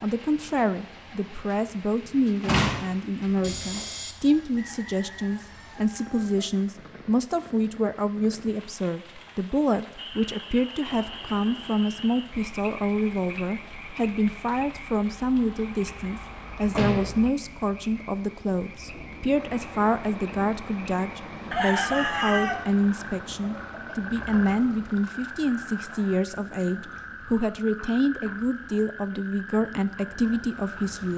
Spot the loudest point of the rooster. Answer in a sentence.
The loudest moment of the rooster is at 22 seconds.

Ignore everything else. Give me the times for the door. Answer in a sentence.
The door can be heard from 2.2 to 3.9 s, from 16.7 to 17.1 s and from 24.1 to 24.6 s.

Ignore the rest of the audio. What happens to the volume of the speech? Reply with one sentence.
The loudness of the speech stays about the same.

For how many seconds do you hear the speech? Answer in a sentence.
You can hear the speech for 31 seconds altogether.